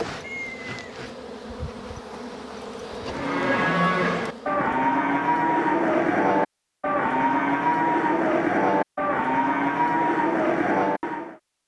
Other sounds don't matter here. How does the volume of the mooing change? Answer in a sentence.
The volume of the mooing stays about the same.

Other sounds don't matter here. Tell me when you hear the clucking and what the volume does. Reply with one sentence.
The clucking can't be heard in this clip.